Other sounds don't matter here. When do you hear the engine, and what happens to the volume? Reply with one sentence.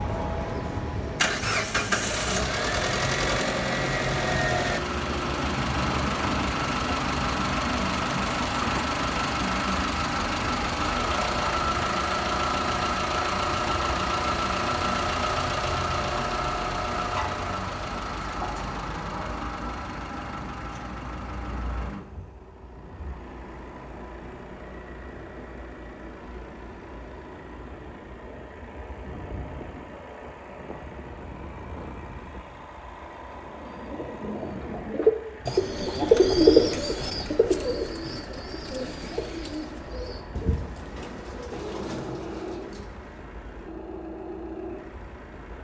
The engine can be heard from 0.0 to 45.5 s, getting quieter.